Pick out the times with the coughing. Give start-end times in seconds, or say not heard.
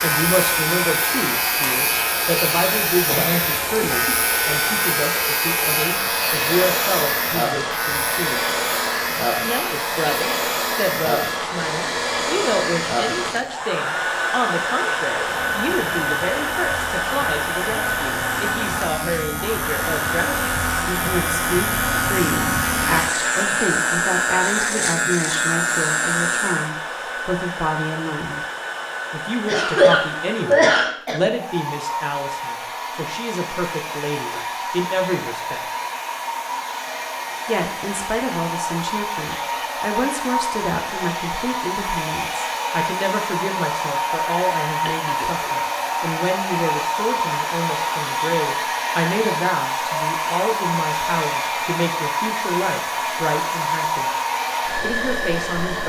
3.0-4.2, 29.4-31.2, 44.9-45.6.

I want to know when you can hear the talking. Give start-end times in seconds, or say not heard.
0.0-8.4, 9.4-28.4, 29.1-35.6, 37.5-54.1, 54.8-55.8.